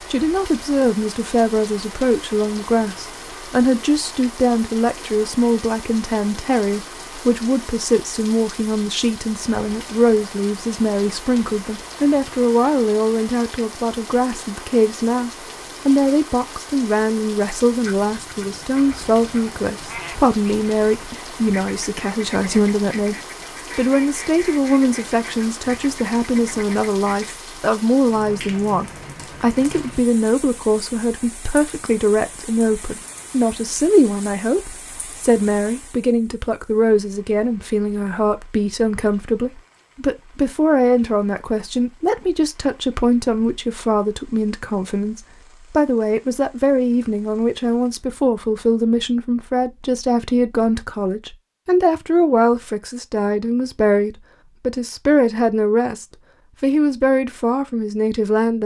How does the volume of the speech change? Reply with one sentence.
The volume of the speech stays about the same.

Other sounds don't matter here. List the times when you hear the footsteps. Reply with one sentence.
You can't hear the footsteps here.